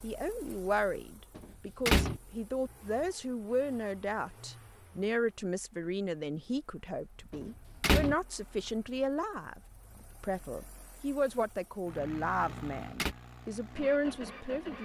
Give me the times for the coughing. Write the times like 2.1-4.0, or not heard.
not heard.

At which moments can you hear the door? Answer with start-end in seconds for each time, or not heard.
1.4-2.2, 7.3-8.2, 12.4-13.2.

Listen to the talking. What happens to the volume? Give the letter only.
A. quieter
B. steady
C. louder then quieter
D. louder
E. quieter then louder
B.